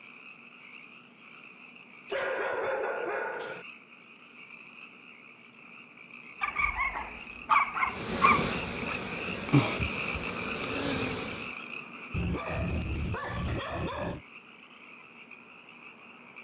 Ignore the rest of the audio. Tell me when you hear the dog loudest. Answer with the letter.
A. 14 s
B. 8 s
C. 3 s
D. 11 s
B.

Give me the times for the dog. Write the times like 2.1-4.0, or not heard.
2.1-3.6, 6.4-8.9, 12.1-14.2.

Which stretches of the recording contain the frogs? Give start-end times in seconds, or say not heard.
0.0-16.3.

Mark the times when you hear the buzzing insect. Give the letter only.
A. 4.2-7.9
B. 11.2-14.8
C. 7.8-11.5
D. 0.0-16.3
C.